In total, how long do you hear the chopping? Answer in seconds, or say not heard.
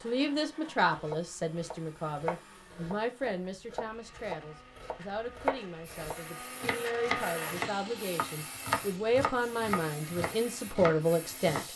11 s.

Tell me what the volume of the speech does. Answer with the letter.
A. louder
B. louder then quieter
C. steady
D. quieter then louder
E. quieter
D.